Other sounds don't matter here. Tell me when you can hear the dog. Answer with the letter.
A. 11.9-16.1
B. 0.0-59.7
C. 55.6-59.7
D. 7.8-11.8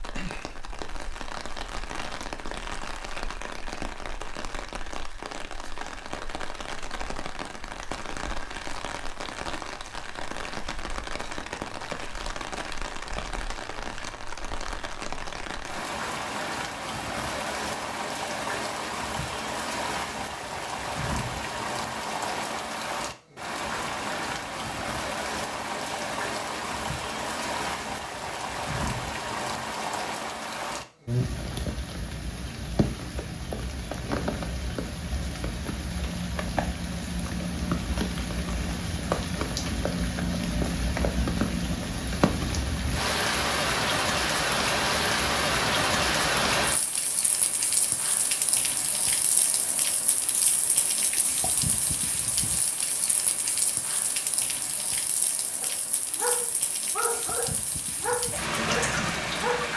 C.